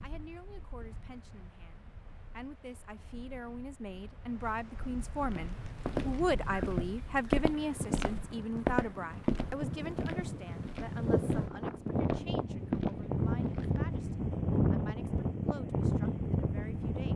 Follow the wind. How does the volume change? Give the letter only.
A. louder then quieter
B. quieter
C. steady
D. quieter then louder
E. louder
E.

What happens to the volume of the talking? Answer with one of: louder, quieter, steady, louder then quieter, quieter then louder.
louder then quieter.